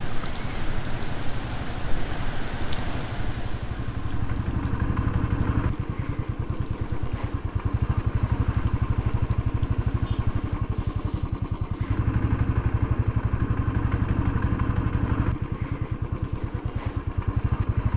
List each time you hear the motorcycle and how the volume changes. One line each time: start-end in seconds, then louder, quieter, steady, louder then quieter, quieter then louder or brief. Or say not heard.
0.0-17.9 louder.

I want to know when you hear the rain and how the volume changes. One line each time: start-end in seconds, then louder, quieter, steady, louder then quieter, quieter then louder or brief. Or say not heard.
0.0-10.6 quieter.